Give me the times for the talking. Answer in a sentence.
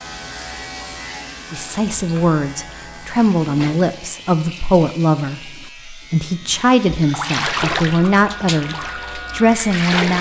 The talking can be heard from 1.5 to 10.1 s.